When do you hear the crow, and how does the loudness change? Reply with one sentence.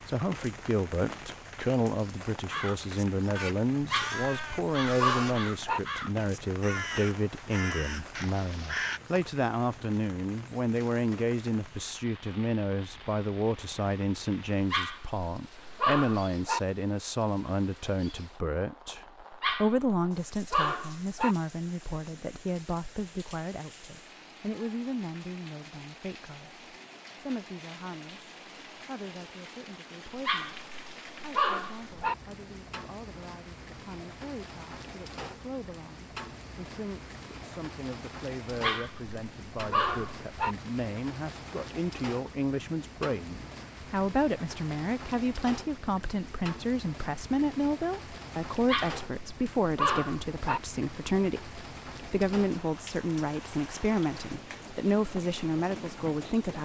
You can hear the crow from 2.5 to 9.0 s, at a steady volume.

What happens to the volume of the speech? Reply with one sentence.
The volume of the speech goes down, then up.